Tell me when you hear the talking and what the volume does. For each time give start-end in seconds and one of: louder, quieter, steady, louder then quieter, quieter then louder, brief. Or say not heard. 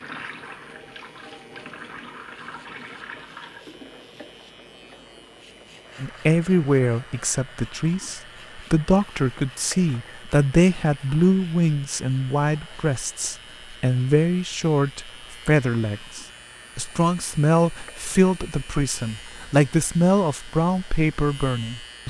6.0-22.0 steady.